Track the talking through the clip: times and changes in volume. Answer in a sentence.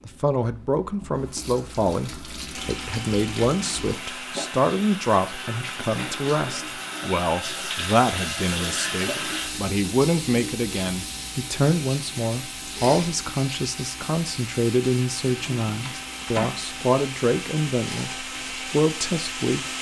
You can hear the talking from 0.1 to 19.6 s, at a steady volume.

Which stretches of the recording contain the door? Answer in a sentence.
You can hear the door from 15.4 to 16.6 s.